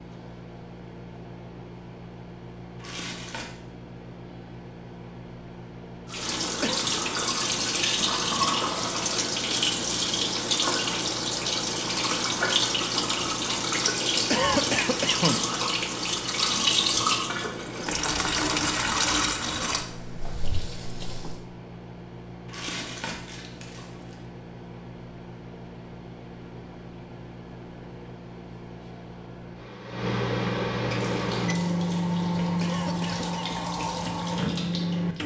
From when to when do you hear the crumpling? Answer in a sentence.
The crumpling can be heard from 2.8 to 3.5 s and from 22.4 to 24.1 s.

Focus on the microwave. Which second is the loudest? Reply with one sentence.
The volume of the microwave peaks at 32 seconds.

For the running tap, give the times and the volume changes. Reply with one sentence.
The running tap can be heard from 6.1 to 21.4 s, at a steady volume; and from 30.9 to 35.2 s, getting louder.